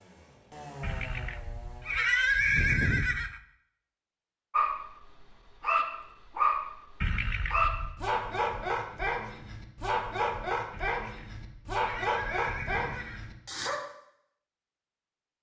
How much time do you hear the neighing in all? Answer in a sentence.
The neighing can be heard for 6 seconds in total.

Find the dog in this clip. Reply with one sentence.
The dog can be heard from 4.5 to 13.8 s.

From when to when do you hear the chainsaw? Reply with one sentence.
The chainsaw can be heard from 0.0 to 2.0 s.